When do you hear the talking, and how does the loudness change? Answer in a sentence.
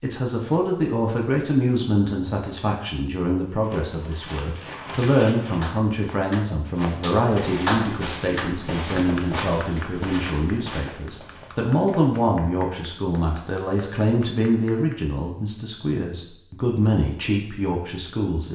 The talking can be heard from 0.0 to 18.4 s, at a steady volume.